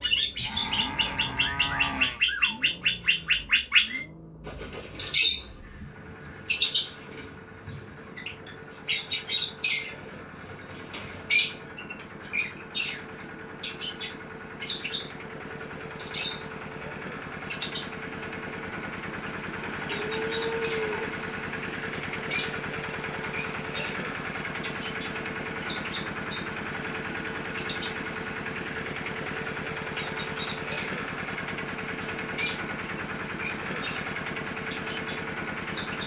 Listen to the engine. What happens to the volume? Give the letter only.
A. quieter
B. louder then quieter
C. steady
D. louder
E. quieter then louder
D.